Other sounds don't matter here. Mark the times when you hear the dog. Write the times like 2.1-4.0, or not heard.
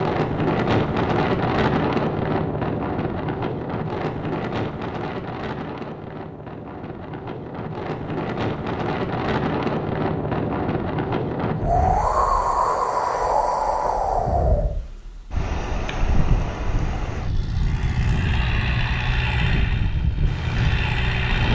not heard.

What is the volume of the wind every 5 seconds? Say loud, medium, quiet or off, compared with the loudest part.
loud, medium, loud, medium, medium.